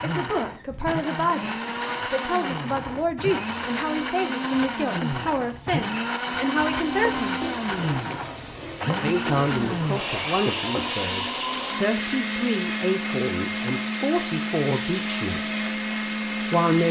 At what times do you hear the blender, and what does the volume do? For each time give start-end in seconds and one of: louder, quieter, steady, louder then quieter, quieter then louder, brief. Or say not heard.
0.0-16.8 steady.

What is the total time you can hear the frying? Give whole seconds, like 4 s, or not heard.
10 s.